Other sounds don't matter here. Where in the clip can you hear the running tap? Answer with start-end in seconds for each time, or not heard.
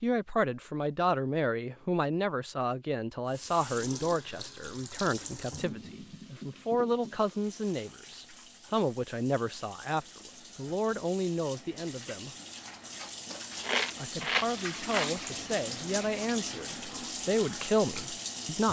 3.2-18.6.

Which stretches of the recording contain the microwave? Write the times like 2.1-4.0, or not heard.
not heard.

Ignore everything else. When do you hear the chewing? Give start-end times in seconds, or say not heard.
13.6-15.2.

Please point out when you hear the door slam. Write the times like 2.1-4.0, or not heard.
not heard.